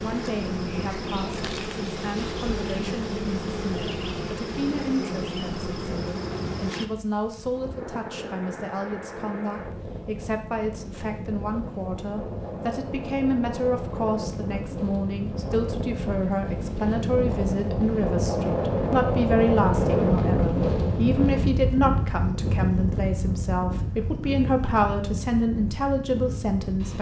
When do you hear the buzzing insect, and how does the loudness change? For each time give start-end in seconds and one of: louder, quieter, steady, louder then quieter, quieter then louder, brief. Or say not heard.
0.0-6.9 steady.